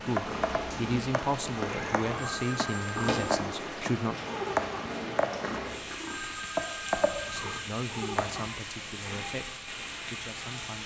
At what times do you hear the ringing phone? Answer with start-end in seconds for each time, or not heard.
2.1-3.2, 6.0-7.7.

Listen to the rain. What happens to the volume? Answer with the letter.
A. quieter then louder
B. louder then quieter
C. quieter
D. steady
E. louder
D.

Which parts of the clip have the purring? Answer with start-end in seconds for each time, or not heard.
0.1-8.5.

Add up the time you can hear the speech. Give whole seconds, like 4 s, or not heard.
8 s.